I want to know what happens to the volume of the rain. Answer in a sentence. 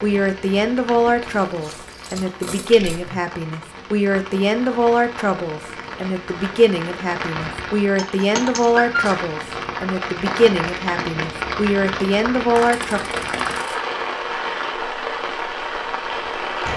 The volume of the rain goes up.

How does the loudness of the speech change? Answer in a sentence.
The volume of the speech stays about the same.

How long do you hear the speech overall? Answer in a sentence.
You can hear the speech for 13 seconds altogether.